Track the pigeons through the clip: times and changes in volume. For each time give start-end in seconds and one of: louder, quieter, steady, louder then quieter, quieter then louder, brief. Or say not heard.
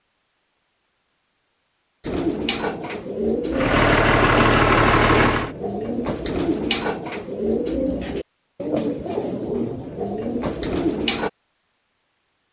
2.0-11.3 steady.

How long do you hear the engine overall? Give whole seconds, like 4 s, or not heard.
2 s.